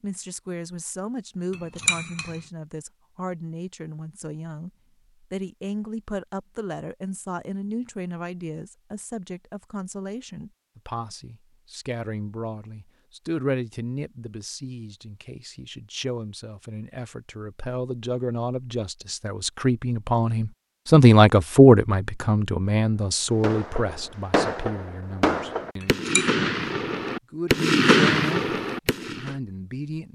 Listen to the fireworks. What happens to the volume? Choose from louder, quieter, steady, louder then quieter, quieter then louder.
louder.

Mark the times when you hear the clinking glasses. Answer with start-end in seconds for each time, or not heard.
1.5-2.4, 25.8-26.3.